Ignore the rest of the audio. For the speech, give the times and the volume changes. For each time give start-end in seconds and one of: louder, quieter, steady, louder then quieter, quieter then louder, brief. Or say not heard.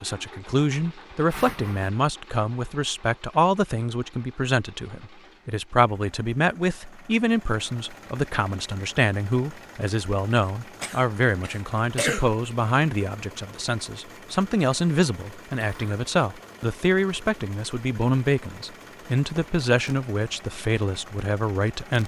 0.0-22.0 steady.